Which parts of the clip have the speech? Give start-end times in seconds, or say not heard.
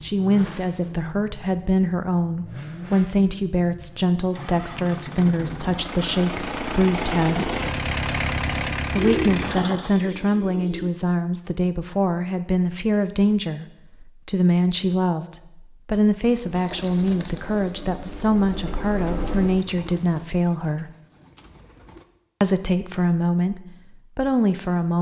0.0-7.5, 8.9-20.9, 22.4-24.9.